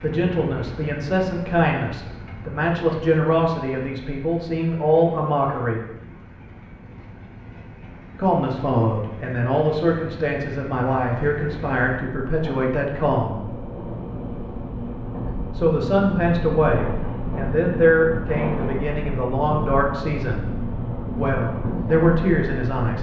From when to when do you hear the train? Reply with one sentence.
You can hear the train from 0.0 to 22.9 s.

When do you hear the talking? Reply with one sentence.
The talking can be heard from 0.0 to 5.8 s, from 8.2 to 13.4 s, from 15.6 to 20.4 s and from 21.1 to 22.9 s.